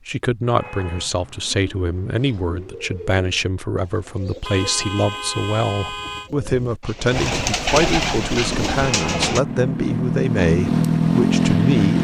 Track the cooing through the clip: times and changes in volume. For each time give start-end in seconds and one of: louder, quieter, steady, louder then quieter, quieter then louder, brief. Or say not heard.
1.1-9.4 louder.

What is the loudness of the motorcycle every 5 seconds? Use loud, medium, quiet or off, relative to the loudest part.
off, medium, loud.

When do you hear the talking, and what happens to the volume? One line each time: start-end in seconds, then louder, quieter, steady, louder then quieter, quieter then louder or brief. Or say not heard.
0.1-11.9 steady.